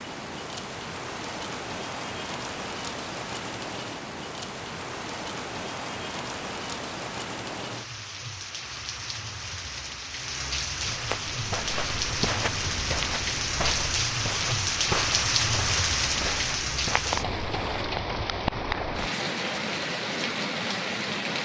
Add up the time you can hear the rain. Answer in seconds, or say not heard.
21 s.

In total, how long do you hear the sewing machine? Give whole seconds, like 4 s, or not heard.
not heard.